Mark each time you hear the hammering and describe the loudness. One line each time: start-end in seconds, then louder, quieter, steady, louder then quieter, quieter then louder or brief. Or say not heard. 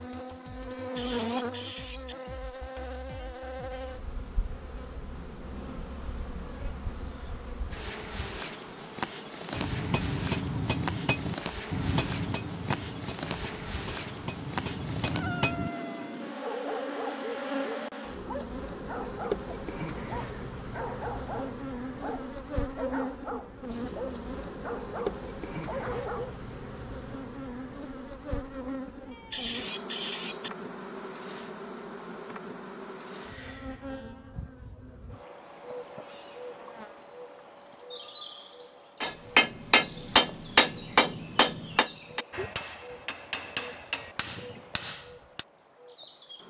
9.5-15.7 quieter then louder
39.0-45.5 quieter.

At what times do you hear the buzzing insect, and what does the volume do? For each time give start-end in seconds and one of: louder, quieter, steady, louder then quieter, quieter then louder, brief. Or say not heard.
0.0-46.4 quieter.